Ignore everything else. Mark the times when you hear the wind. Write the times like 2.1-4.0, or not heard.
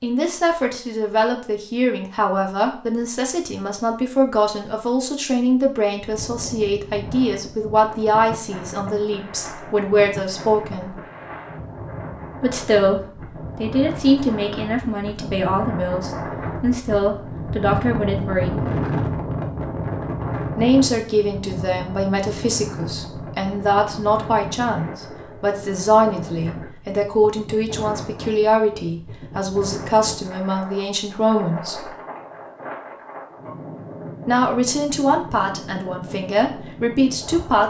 6.0-37.6.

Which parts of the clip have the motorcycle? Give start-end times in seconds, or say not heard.
not heard.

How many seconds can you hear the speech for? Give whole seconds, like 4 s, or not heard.
32 s.